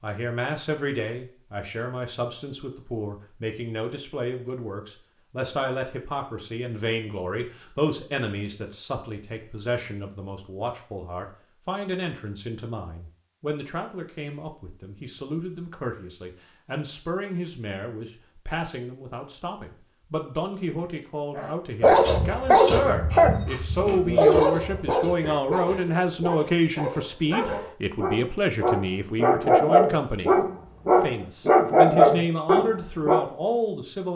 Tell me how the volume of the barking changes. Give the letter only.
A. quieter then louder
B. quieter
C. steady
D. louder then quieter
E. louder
A.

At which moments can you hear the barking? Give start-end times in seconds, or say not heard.
21.4-33.2.